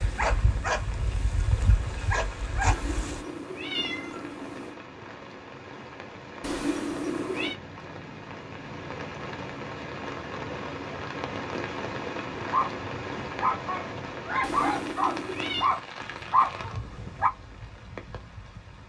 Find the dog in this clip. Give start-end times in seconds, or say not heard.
0.0-3.2, 12.4-17.3.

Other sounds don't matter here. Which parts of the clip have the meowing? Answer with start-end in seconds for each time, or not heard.
2.6-4.8, 6.4-7.5, 14.4-15.7.